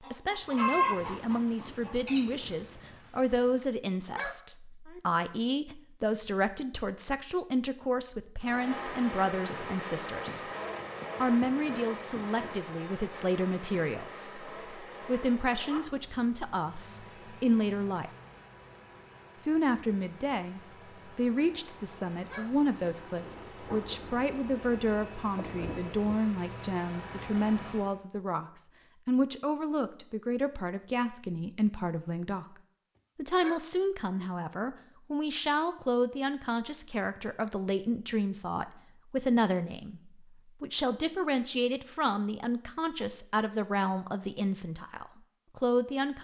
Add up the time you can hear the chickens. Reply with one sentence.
You can hear the chickens for 2 seconds altogether.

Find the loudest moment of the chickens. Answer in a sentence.
The volume of the chickens peaks at 1 second.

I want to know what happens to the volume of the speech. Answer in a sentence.
The volume of the speech stays about the same.